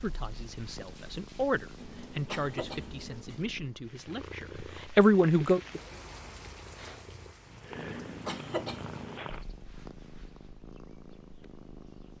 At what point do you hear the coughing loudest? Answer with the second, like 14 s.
8 s.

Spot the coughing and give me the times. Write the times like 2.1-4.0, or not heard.
1.8-3.2, 7.8-9.2.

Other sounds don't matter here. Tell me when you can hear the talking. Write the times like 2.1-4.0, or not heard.
0.0-5.6.